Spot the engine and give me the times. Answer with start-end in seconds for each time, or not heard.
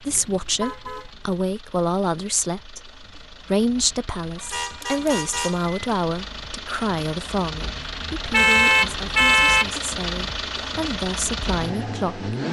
0.0-12.4.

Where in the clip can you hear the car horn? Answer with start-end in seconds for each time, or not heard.
0.1-1.1, 4.3-5.8, 8.3-9.8.